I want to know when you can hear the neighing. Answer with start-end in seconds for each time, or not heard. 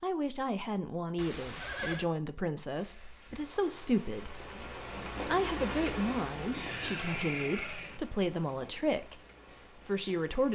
1.1-2.0, 6.5-8.0.